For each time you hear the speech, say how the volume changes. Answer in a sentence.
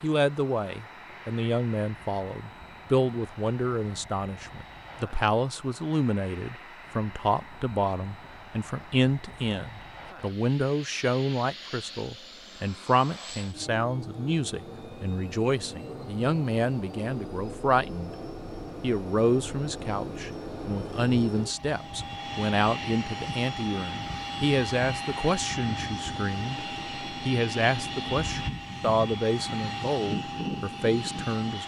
You can hear the speech from 0.0 to 18.1 s, at a steady volume; and from 18.8 to 31.6 s, at a steady volume.